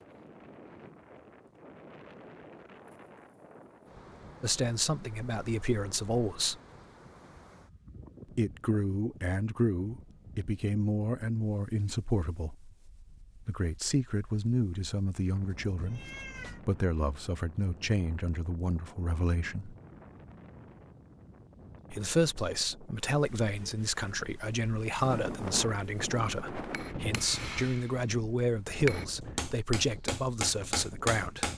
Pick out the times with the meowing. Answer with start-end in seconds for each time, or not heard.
15.4-16.6.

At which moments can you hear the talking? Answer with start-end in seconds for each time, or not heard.
4.4-6.6, 8.3-12.6, 13.4-19.8, 21.9-31.5.